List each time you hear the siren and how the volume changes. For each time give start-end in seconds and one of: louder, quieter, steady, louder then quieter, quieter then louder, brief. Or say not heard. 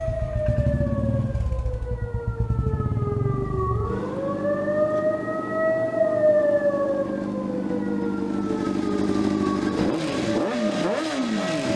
0.0-11.7 louder then quieter.